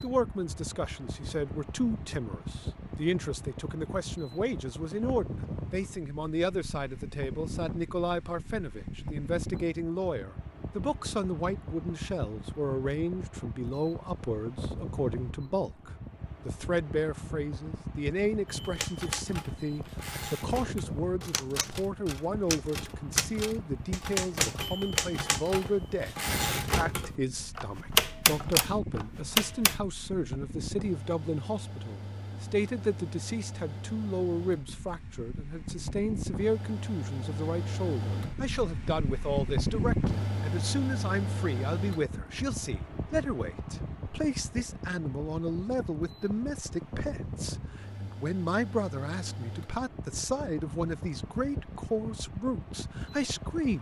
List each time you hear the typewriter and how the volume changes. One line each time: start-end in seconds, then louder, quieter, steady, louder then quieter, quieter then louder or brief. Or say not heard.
18.5-29.8 louder.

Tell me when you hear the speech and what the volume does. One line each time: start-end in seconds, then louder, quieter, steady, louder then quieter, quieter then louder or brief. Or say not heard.
0.0-53.7 steady.